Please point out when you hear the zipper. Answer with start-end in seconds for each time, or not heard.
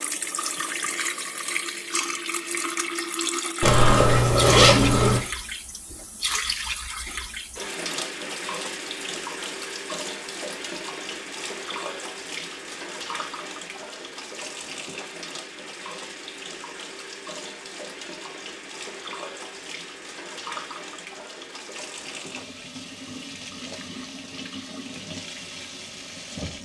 3.6-5.2.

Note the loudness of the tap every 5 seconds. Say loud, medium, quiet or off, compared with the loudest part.
loud, loud, medium, medium, medium, medium.